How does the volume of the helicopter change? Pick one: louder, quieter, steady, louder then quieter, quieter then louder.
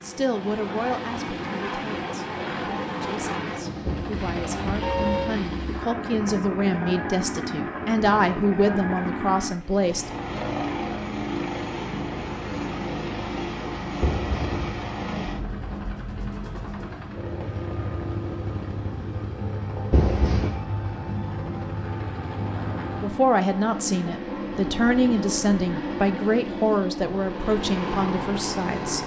steady.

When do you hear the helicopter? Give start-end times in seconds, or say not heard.
0.0-29.0.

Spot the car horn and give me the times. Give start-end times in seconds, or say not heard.
3.9-5.3, 14.0-14.8, 19.9-20.6.